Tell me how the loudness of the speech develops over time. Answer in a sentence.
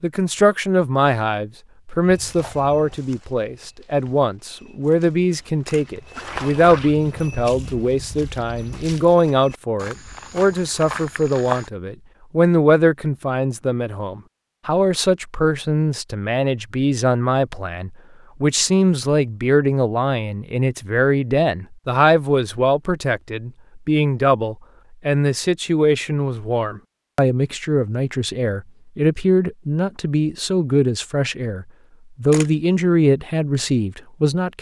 The loudness of the speech stays about the same.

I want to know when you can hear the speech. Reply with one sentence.
You can hear the speech from 0.0 to 34.5 s.